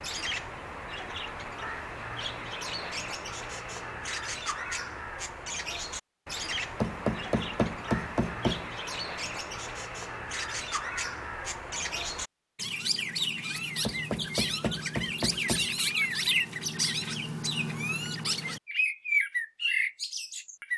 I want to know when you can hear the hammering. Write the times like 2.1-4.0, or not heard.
6.8-8.7, 13.8-15.7.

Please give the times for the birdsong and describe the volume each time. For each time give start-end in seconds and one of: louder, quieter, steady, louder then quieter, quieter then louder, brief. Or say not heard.
0.0-20.7 louder.